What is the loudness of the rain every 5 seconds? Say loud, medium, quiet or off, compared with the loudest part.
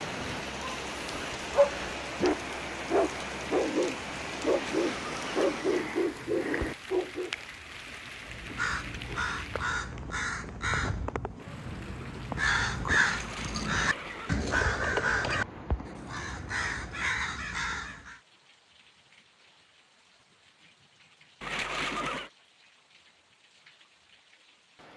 loud, loud, medium, quiet, quiet.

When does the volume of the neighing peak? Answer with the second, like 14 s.
22 s.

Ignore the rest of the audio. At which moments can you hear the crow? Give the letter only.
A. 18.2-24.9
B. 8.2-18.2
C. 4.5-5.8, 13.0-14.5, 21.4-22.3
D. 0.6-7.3
B.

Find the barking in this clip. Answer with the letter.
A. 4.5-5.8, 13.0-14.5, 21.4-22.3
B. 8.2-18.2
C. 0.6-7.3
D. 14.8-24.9
C.